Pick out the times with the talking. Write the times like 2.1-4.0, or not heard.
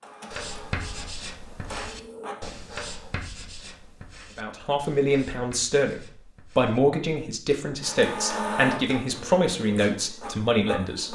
4.3-11.1.